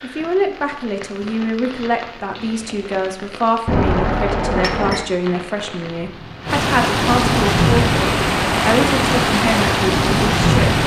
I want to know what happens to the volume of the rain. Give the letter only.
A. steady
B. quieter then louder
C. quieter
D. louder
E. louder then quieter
D.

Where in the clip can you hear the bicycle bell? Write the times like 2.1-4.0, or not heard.
3.6-5.0.